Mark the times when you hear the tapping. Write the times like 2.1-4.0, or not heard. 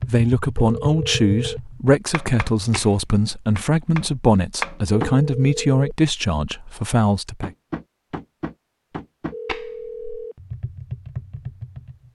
0.0-5.2, 7.4-12.1.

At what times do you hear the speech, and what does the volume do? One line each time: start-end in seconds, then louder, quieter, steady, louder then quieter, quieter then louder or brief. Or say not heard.
0.1-7.5 steady.